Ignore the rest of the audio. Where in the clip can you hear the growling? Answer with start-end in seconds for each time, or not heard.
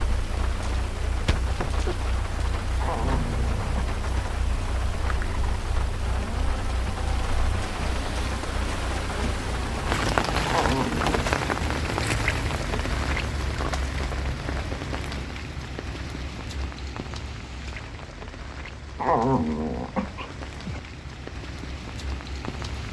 2.8-3.9, 10.4-11.3, 18.9-20.8.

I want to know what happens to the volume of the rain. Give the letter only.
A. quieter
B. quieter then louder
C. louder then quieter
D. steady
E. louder
C.